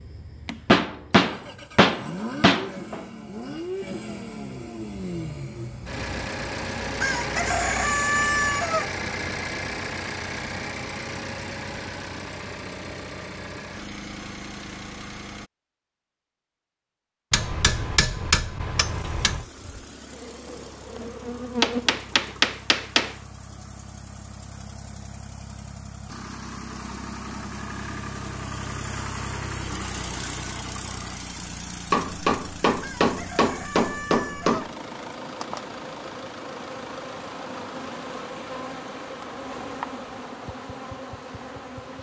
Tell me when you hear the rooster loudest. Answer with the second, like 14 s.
8 s.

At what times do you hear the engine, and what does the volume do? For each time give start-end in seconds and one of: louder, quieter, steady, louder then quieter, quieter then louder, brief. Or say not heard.
0.0-15.5 louder then quieter
18.8-41.9 louder then quieter.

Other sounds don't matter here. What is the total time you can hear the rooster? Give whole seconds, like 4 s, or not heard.
4 s.